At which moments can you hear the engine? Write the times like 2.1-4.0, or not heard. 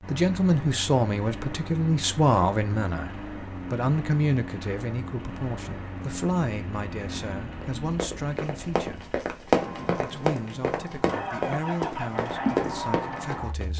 0.0-13.7.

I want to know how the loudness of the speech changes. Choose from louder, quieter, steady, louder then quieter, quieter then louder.
quieter.